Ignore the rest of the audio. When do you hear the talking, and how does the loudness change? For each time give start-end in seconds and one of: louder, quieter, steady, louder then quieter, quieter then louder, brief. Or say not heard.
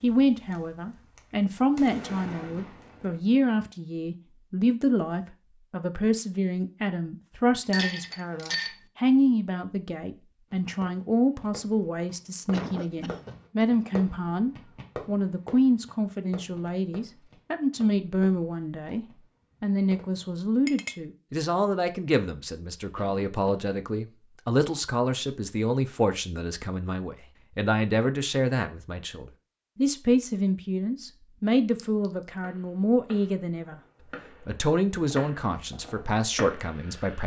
0.0-33.8 steady
34.4-37.2 brief.